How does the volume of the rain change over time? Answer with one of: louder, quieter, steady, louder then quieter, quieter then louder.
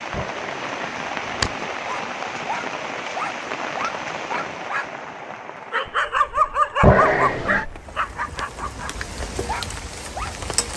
quieter then louder.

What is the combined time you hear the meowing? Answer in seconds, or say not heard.
2 s.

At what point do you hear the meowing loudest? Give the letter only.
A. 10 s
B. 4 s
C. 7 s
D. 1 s
C.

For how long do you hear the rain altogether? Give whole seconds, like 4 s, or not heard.
11 s.